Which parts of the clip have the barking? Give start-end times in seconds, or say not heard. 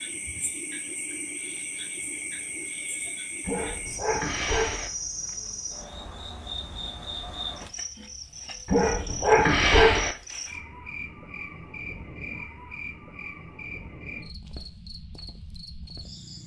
3.5-4.9, 8.7-10.2.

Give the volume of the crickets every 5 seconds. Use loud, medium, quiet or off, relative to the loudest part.
loud, loud, loud, medium.